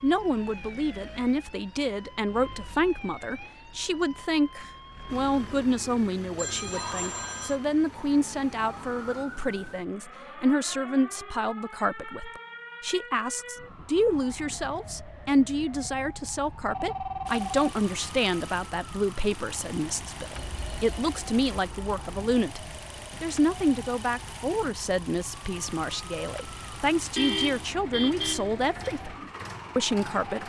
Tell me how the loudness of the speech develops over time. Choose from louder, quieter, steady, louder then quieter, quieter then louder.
steady.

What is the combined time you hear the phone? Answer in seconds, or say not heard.
4 s.